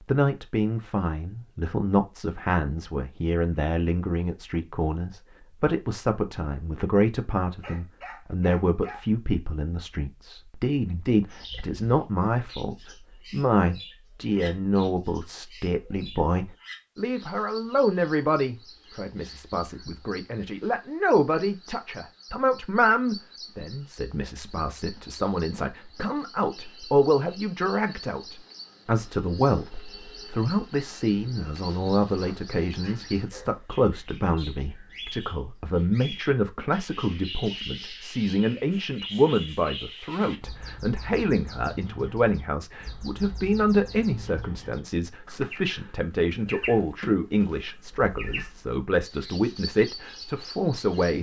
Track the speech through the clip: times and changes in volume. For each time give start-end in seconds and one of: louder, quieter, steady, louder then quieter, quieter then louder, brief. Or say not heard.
0.1-51.1 steady.